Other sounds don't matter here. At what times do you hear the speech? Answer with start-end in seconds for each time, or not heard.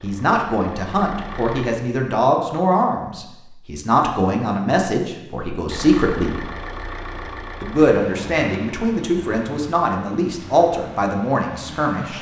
0.0-6.4, 7.6-12.1.